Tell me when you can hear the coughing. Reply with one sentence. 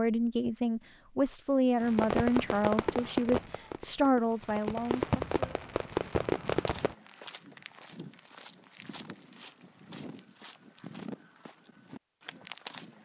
You can't hear the coughing here.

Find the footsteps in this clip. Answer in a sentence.
You can hear the footsteps from 6.3 to 12.9 s.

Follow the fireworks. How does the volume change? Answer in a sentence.
The loudness of the fireworks goes down, then up.